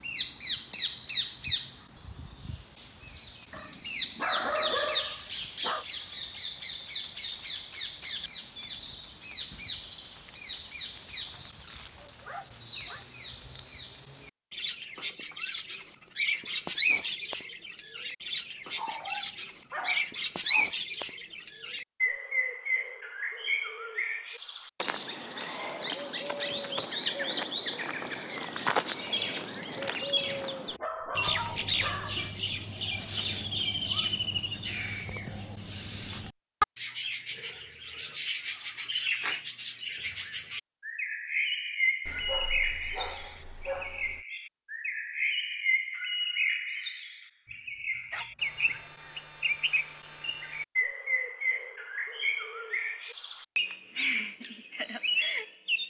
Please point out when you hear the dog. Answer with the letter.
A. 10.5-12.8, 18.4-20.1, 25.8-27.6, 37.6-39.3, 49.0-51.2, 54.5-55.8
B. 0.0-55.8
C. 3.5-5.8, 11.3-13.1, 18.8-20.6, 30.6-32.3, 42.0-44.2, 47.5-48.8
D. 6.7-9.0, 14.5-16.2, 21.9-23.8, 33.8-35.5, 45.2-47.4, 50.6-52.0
C.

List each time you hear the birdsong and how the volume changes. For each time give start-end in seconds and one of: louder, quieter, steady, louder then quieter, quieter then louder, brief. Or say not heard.
0.0-55.8 steady.